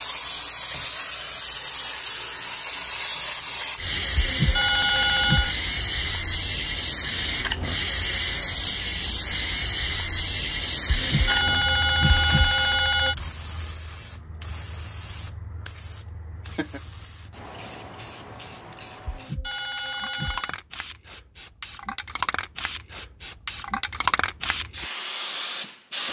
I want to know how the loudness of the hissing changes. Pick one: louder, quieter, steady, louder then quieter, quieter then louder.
quieter then louder.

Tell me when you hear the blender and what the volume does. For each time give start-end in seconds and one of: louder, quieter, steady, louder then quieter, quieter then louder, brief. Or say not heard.
not heard.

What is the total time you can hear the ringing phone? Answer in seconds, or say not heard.
5 s.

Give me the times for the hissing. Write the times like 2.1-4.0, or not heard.
0.0-26.0.